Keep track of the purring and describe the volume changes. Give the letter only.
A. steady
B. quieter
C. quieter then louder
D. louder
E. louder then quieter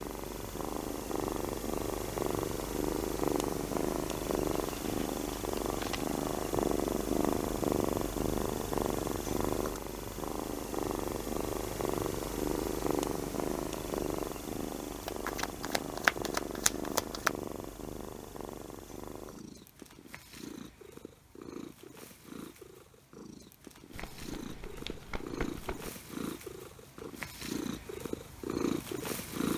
C.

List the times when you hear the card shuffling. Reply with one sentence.
You can hear the card shuffling from 4.5 to 6.1 s, from 15.1 to 17.3 s and from 23.9 to 25.9 s.